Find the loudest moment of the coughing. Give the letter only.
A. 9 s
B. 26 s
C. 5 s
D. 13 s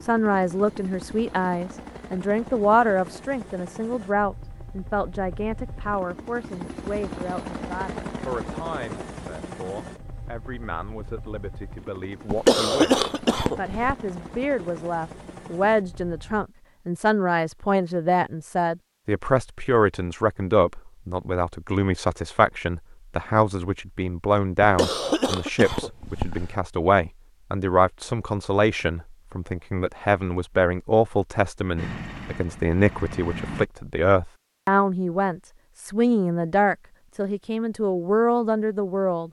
D.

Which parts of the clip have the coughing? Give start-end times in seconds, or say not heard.
12.2-13.9, 24.6-26.6.